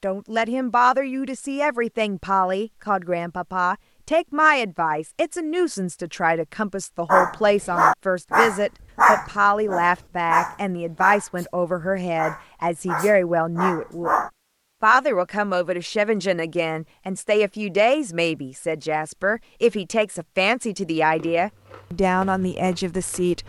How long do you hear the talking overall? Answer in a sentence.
You can hear the talking for 23 seconds altogether.